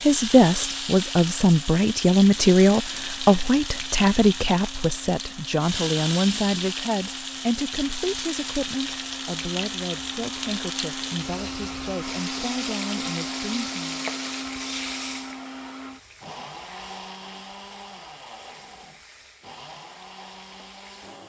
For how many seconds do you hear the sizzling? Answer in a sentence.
The sizzling can be heard for 21 seconds in total.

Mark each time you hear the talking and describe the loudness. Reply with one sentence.
The talking can be heard from 0.0 to 14.1 s, getting quieter.